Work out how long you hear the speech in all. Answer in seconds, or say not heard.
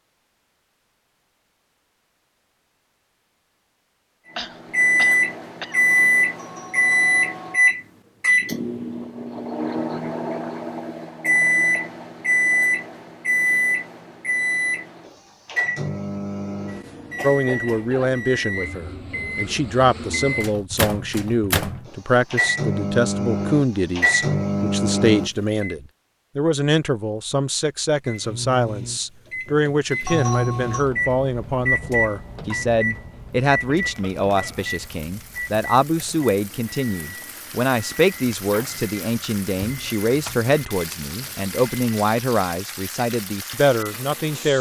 27 s.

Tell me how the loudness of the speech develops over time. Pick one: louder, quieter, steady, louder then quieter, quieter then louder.
steady.